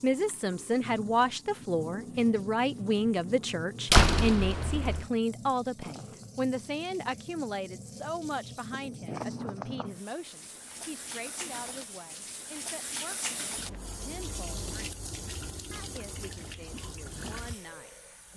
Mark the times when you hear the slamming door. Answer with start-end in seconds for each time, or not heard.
3.9-5.0.